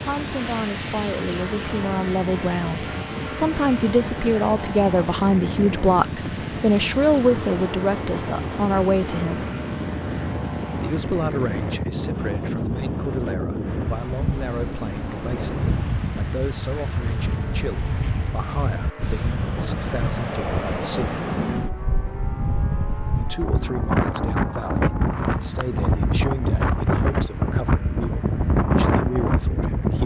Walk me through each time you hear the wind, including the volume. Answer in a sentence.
The wind can be heard from 0.0 to 30.0 s, getting louder.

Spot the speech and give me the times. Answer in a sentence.
You can hear the speech from 0.0 to 9.4 s, from 10.8 to 21.2 s and from 23.1 to 30.0 s.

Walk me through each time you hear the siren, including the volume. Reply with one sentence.
You can't hear the siren here.